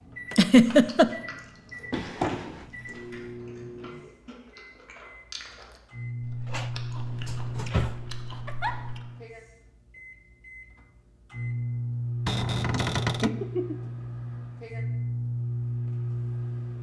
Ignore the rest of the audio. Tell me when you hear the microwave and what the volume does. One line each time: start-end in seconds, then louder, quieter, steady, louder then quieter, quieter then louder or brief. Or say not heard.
0.0-16.7 louder.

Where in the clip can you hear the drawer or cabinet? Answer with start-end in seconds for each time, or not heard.
1.9-3.1, 6.5-8.0, 12.2-13.3.